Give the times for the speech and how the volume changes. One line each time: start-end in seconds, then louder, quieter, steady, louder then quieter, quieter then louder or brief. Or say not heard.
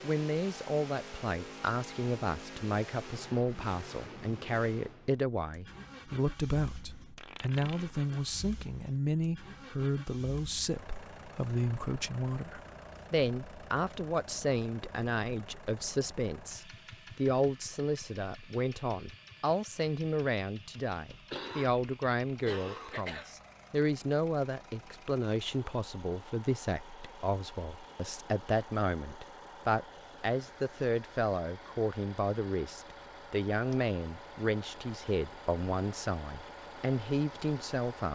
0.0-38.0 steady.